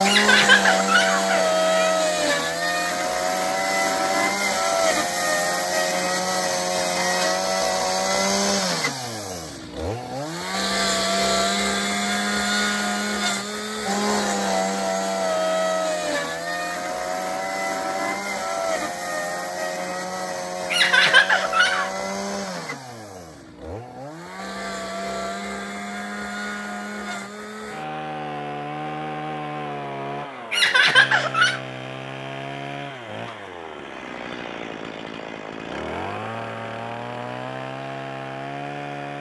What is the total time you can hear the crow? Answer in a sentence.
You can't hear the crow here.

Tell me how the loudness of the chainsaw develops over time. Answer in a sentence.
The loudness of the chainsaw goes down.